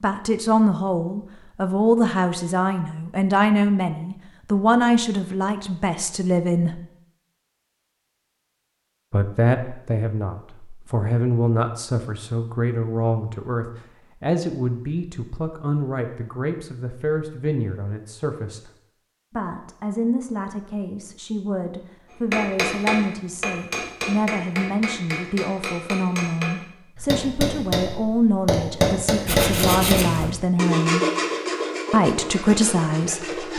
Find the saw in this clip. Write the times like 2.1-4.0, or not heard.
29.2-33.5.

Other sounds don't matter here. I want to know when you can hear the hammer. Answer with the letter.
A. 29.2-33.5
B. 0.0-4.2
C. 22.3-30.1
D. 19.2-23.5
C.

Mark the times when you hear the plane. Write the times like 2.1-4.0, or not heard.
not heard.